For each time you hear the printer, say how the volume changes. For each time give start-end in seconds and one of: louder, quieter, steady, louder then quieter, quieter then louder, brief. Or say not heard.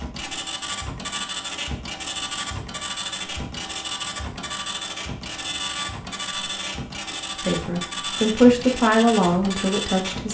0.0-10.2 steady.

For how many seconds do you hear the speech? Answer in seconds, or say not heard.
3 s.